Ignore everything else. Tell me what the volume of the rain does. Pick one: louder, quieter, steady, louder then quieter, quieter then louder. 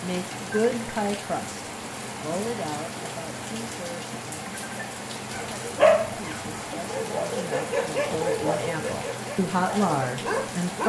steady.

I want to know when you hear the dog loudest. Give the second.
6 s.